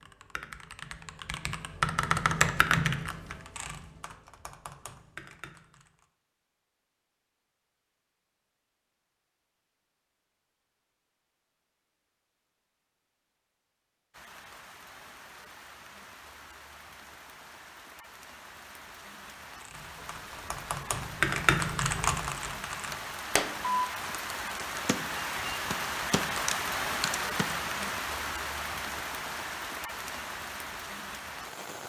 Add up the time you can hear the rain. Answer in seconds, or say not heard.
18 s.